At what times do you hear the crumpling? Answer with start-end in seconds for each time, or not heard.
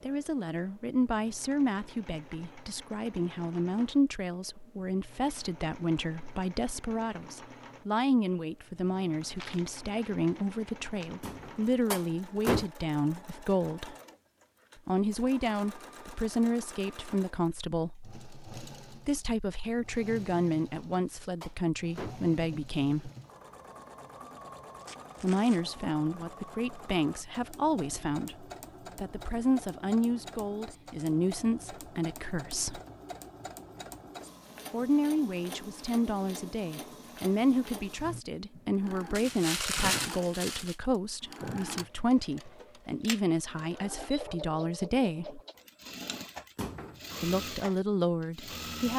9.3-11.2, 24.8-25.8, 39.1-40.8.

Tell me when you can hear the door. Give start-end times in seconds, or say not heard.
11.2-12.7, 20.7-22.4, 46.5-47.1.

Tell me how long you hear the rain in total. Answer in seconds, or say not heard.
not heard.